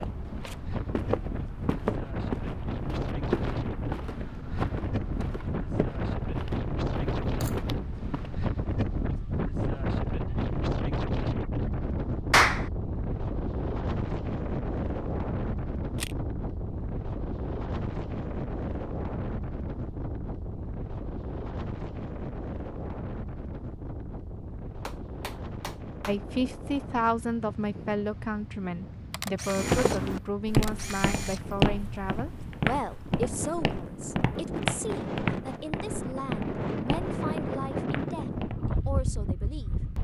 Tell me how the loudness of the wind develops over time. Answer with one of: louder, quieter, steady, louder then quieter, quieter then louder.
quieter then louder.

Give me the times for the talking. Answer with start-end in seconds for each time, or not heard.
26.1-39.8.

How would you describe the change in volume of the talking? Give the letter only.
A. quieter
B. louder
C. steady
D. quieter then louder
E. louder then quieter
A.